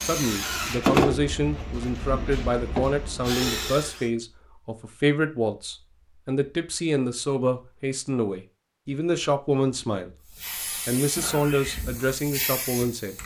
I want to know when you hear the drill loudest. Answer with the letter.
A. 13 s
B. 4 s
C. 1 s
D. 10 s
C.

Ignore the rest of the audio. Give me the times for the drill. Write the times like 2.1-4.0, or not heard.
0.0-4.0.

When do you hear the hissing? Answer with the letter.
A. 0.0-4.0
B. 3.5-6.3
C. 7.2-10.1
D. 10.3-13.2
D.